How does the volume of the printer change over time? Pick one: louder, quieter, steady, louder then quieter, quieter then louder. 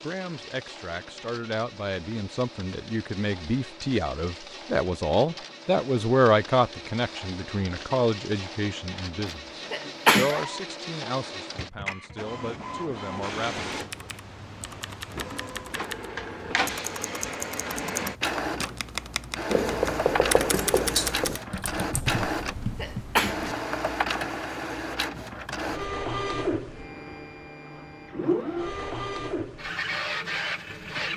louder.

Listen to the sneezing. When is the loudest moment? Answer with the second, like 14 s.
10 s.